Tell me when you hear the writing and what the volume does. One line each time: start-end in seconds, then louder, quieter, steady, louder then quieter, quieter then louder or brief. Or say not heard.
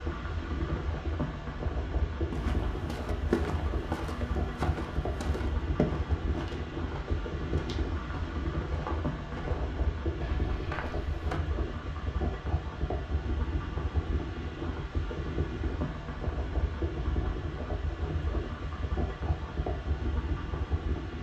not heard.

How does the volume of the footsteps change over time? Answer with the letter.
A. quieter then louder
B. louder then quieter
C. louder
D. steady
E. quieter
E.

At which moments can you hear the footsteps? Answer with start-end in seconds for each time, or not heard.
2.3-11.4.